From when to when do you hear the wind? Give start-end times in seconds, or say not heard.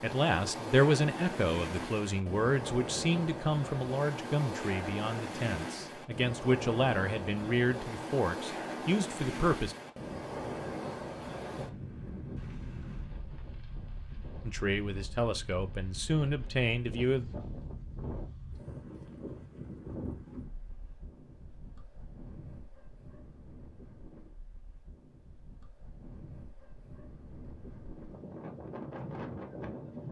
0.0-30.0.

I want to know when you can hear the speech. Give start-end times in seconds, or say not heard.
0.0-9.8, 14.4-17.2.